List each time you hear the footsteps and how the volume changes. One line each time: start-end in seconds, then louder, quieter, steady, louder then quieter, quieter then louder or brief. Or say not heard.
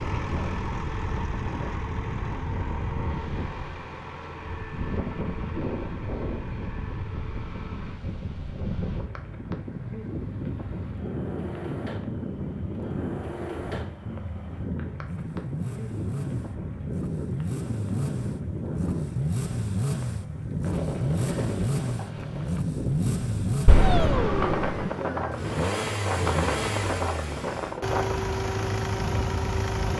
not heard.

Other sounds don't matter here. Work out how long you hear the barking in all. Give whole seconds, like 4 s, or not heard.
not heard.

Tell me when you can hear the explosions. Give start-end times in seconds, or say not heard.
23.6-24.9.